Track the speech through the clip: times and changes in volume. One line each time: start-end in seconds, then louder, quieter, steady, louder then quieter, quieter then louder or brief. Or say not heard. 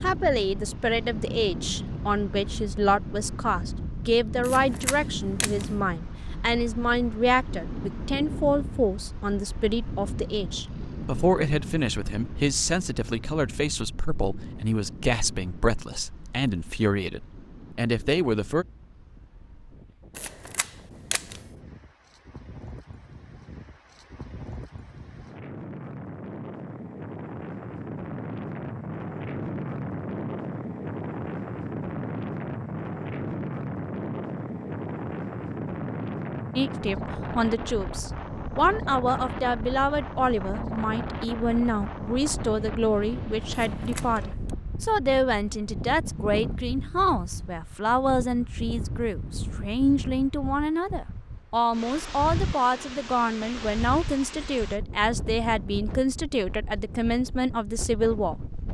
0.0-18.6 steady
36.5-58.4 steady.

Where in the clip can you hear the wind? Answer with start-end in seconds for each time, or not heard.
0.0-58.6.